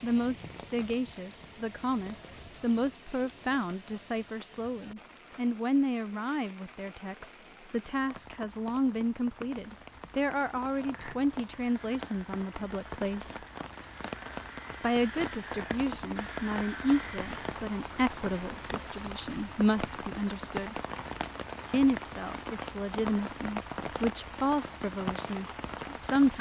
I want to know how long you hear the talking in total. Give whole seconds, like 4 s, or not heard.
24 s.